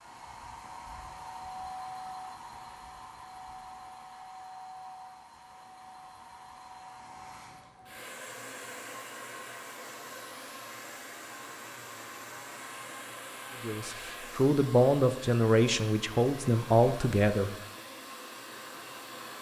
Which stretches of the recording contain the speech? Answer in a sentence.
The speech can be heard from 13.6 to 17.5 s.